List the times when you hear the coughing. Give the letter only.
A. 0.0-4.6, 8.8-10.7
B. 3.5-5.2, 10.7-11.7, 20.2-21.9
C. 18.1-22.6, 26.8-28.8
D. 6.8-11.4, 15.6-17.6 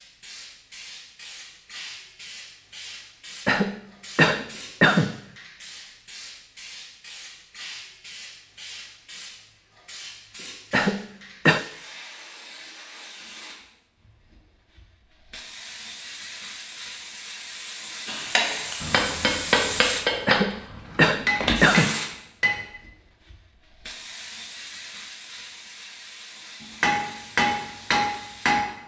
B.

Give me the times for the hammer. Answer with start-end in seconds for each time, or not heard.
18.1-22.6, 26.8-28.8.